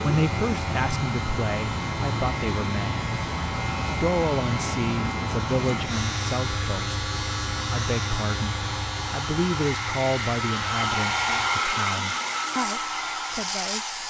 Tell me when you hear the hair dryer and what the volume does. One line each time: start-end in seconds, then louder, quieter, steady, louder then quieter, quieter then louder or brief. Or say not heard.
0.0-14.0 louder.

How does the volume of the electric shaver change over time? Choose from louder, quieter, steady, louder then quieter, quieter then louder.
quieter.